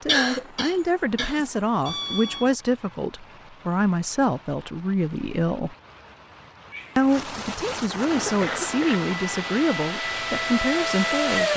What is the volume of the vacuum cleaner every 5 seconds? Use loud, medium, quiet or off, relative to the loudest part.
off, medium, loud.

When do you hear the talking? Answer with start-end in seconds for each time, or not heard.
0.0-5.8, 7.0-11.5.